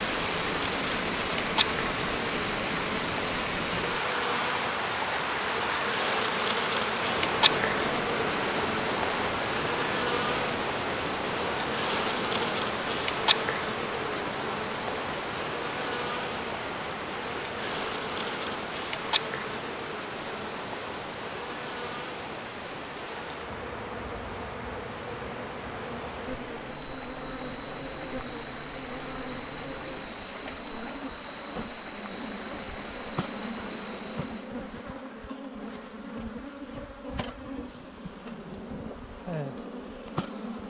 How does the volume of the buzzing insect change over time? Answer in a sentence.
The loudness of the buzzing insect goes down.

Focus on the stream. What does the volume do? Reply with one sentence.
The volume of the stream goes down.